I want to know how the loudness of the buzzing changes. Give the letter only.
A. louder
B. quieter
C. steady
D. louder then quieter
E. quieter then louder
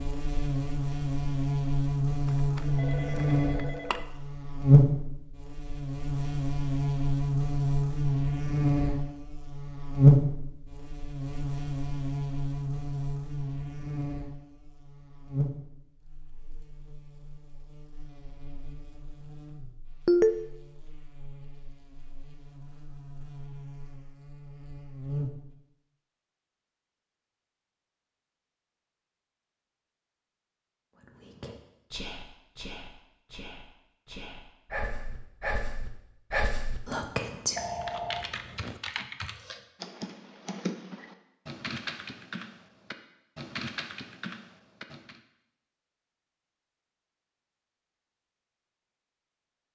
B.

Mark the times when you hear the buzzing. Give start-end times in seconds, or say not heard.
0.0-25.6.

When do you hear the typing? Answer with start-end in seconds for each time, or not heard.
37.8-45.2.